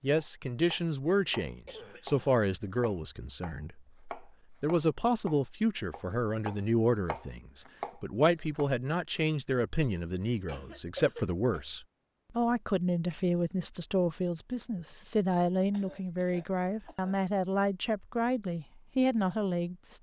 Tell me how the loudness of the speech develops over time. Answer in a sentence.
The volume of the speech stays about the same.